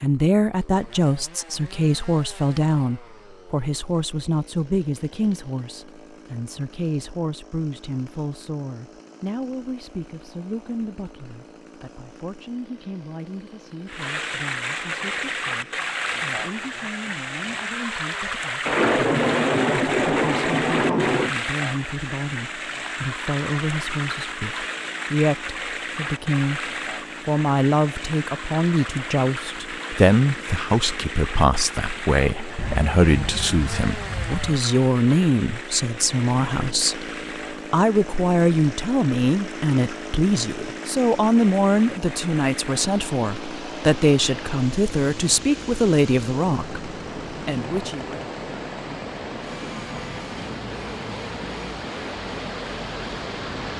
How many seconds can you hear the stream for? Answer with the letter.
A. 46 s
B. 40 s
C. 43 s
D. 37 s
B.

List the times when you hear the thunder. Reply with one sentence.
You can hear the thunder from 18.6 to 21.3 s and from 32.5 to 34.5 s.